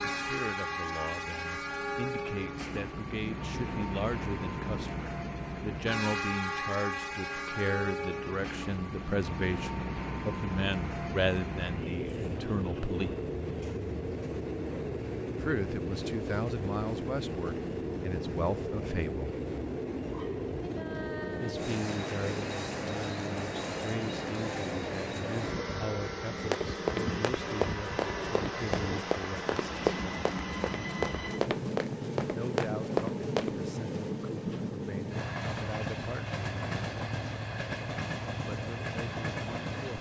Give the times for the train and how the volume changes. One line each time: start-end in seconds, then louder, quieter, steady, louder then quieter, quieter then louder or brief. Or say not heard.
0.0-39.9 steady.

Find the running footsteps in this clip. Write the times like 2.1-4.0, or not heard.
26.4-33.6.